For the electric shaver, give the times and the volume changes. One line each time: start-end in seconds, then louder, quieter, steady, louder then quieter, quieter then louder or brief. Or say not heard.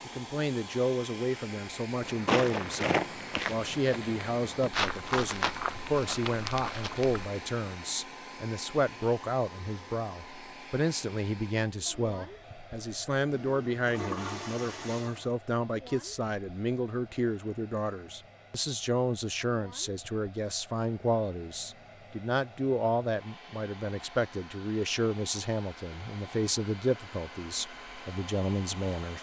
not heard.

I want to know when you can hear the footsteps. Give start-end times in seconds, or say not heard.
2.0-7.2.